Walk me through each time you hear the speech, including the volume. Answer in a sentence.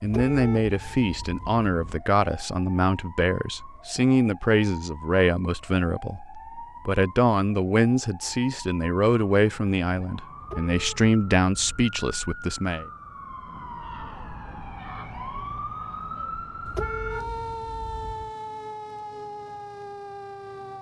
You can hear the speech from 0.0 to 12.8 s, at a steady volume.